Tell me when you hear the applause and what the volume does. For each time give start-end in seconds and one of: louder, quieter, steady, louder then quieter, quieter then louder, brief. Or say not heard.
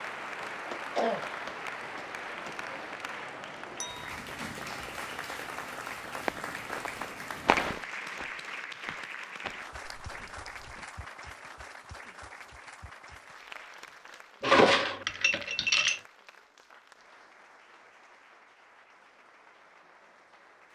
0.0-20.6 quieter.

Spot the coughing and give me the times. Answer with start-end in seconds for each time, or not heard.
0.7-2.5.